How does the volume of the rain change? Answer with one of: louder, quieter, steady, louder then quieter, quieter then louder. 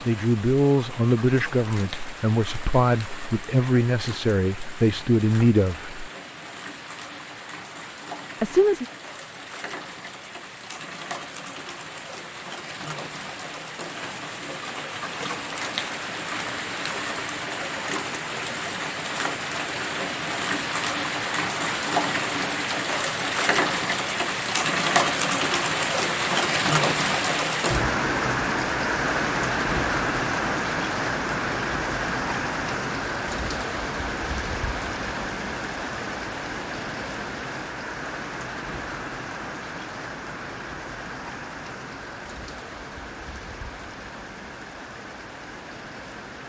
louder then quieter.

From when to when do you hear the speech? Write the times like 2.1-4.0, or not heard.
0.0-6.1, 8.4-8.8.